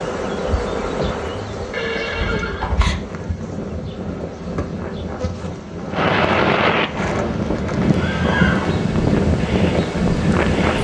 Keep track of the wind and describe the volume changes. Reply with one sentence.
The loudness of the wind goes up.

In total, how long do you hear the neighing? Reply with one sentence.
You can hear the neighing for 3 seconds altogether.